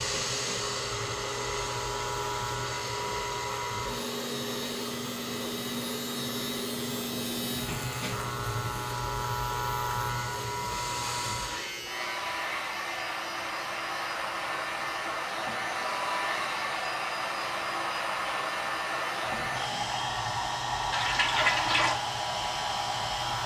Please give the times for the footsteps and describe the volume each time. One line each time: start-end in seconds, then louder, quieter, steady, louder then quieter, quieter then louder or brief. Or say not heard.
not heard.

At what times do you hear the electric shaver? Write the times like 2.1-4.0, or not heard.
0.0-23.4.